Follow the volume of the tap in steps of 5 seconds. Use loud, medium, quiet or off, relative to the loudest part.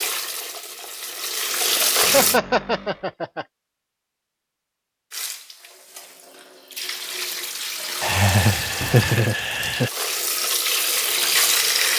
loud, medium, loud.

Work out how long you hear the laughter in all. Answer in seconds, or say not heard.
3 s.